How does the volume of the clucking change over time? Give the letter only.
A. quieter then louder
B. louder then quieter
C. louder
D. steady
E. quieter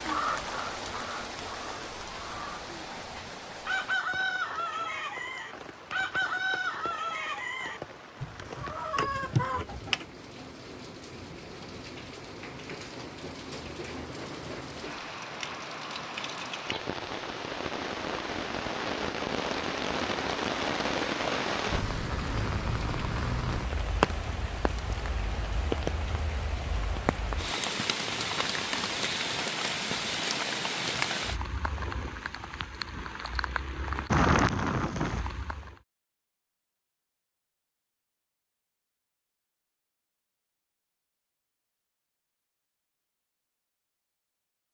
C.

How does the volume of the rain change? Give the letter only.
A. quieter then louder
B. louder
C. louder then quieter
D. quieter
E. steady
B.